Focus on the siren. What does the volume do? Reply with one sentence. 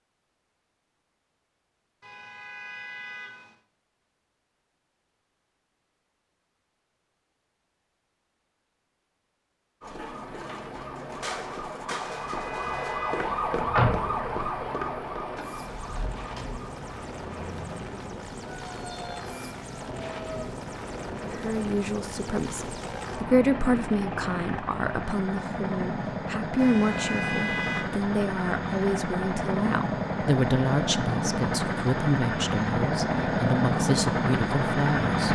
The loudness of the siren goes up, then down.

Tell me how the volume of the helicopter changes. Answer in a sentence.
The loudness of the helicopter goes up.